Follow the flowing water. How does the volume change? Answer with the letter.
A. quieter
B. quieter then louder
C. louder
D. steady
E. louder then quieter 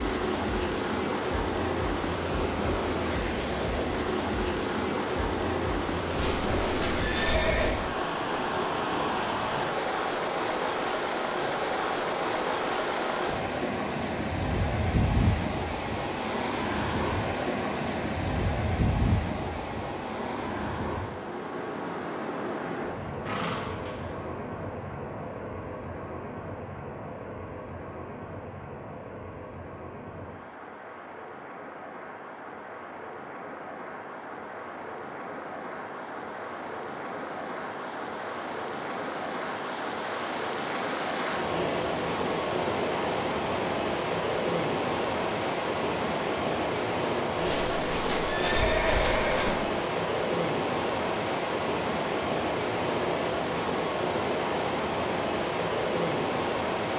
B.